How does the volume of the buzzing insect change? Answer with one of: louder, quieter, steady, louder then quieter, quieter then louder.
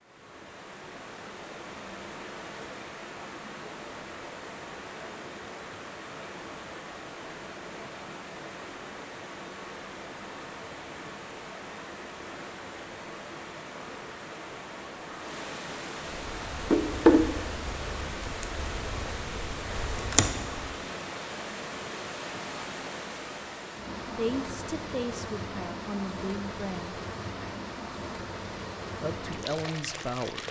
quieter then louder.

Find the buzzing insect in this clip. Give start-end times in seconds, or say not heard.
16.2-20.8.